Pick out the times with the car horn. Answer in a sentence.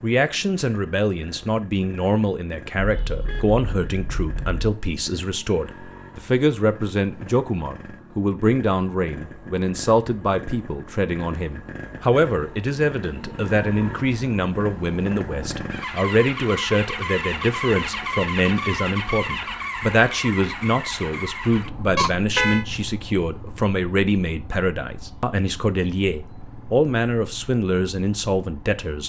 The car horn can be heard from 2.8 to 4.6 s and from 21.9 to 22.6 s.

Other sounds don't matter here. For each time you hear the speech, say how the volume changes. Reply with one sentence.
The speech can be heard from 0.0 to 29.0 s, at a steady volume.